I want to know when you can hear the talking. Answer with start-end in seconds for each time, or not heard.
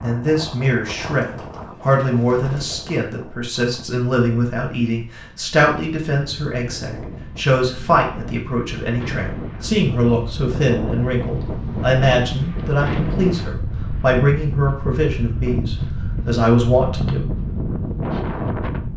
0.0-17.3.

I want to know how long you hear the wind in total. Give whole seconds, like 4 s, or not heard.
19 s.